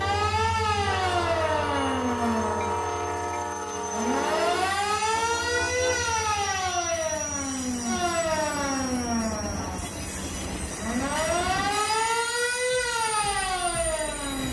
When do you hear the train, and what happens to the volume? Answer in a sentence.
You can hear the train from 0.0 to 14.4 s, getting quieter.